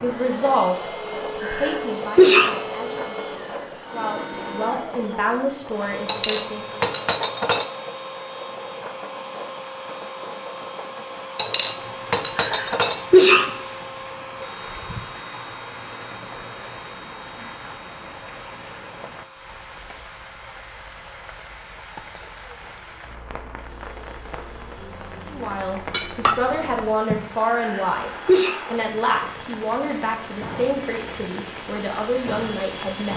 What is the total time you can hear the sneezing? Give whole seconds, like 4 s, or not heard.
3 s.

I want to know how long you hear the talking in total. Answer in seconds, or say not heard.
15 s.